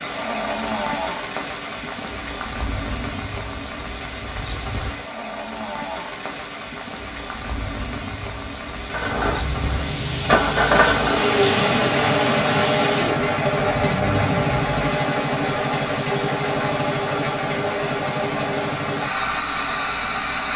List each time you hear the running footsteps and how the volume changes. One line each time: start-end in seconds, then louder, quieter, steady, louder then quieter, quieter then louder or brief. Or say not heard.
not heard.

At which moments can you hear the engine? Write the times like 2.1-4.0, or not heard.
8.9-20.5.